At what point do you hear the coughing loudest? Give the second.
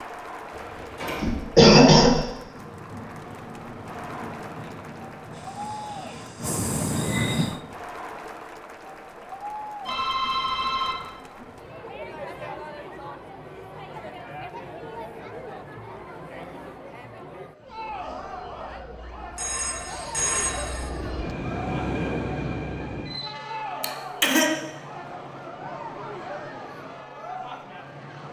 2 s.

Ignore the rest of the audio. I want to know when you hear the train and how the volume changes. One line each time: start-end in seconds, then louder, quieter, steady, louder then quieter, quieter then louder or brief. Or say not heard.
2.4-7.7 louder
17.6-28.2 louder then quieter.